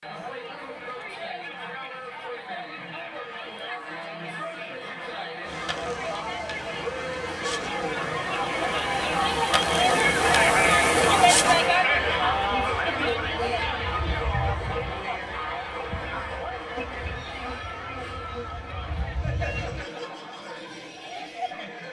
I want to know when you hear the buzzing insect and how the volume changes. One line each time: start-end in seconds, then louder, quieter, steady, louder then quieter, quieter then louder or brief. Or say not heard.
5.4-19.9 louder then quieter.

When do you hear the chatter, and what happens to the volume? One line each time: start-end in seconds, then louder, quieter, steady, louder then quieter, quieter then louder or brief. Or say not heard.
0.0-21.8 louder then quieter.